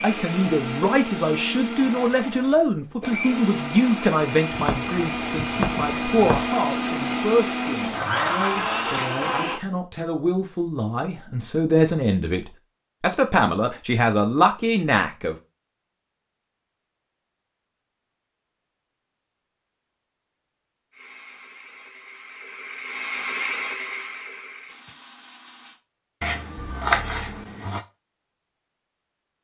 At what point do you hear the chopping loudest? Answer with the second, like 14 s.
27 s.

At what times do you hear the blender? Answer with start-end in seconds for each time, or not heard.
0.0-9.6, 20.9-25.8.